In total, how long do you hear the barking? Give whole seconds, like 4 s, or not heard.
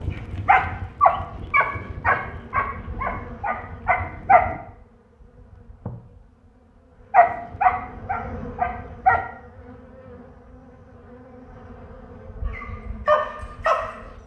8 s.